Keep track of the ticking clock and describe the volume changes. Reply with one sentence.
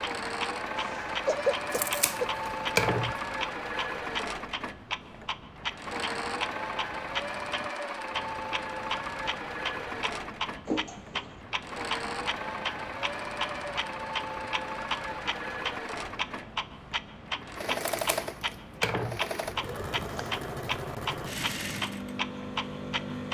The loudness of the ticking clock stays about the same.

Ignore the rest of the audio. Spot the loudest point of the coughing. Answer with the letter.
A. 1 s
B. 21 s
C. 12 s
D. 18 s
A.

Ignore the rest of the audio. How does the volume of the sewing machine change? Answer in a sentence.
The volume of the sewing machine stays about the same.